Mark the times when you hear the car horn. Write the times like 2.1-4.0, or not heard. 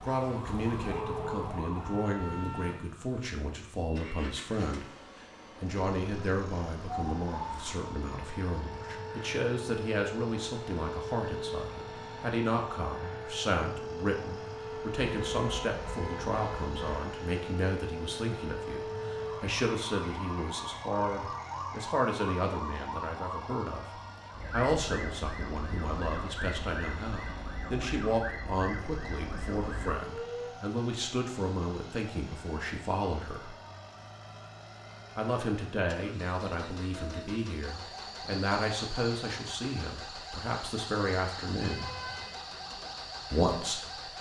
0.6-1.6, 15.0-17.0, 41.6-42.4.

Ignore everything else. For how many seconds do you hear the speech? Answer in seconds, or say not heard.
40 s.